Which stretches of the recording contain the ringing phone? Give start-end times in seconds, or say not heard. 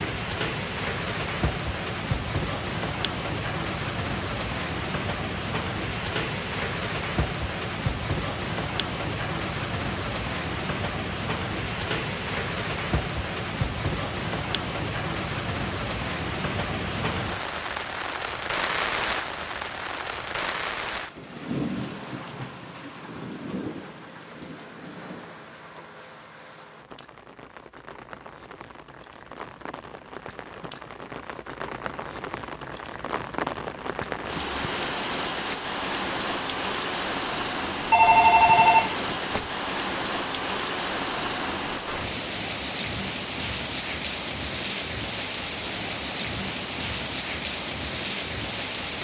37.9-39.5.